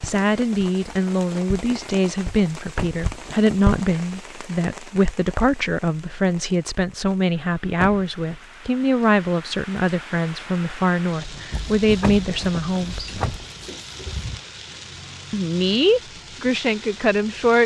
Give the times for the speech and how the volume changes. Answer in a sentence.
You can hear the speech from 0.0 to 13.2 s, at a steady volume; and briefly from 15.3 to 17.6 s.